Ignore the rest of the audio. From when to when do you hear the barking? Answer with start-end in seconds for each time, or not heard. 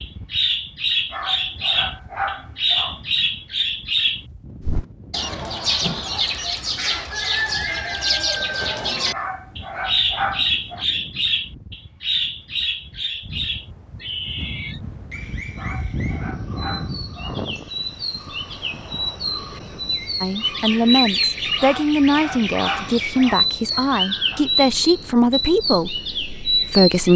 1.1-3.0, 9.1-10.8, 15.6-17.4, 21.6-24.4.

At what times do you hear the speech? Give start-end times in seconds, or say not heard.
20.2-27.1.